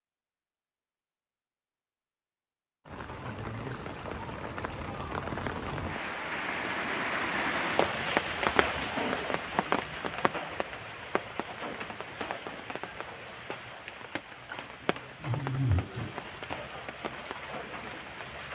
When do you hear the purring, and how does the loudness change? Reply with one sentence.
The purring can't be heard in this clip.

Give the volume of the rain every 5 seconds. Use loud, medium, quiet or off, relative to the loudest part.
medium, loud, medium, medium.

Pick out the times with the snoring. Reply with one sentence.
The snoring can be heard from 15.2 to 16.6 s.